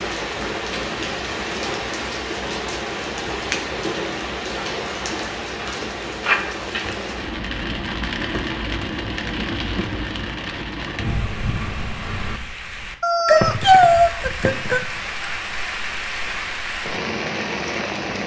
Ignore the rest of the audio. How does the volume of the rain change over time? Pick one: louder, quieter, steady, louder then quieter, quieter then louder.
steady.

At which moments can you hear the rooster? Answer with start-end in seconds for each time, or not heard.
13.0-14.8.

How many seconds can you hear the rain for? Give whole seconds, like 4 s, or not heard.
18 s.